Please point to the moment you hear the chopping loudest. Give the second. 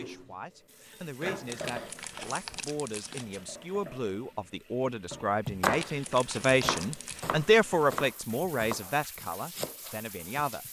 6 s.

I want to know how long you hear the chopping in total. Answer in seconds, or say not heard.
5 s.